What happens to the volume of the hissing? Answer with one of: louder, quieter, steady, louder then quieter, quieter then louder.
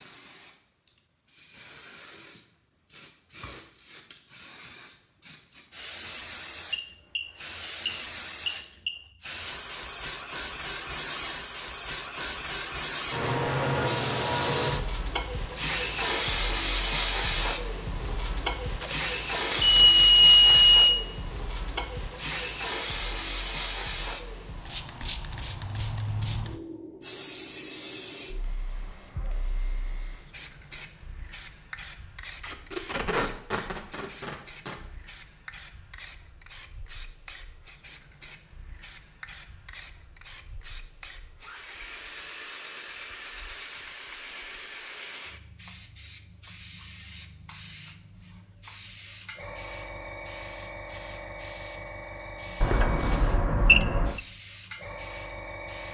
louder then quieter.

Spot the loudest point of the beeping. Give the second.
20 s.